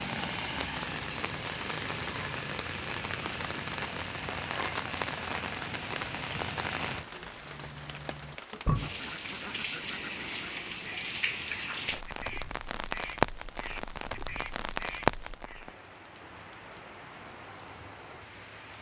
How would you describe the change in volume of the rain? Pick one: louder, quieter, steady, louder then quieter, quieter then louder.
steady.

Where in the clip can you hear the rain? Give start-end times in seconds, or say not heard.
0.0-18.7.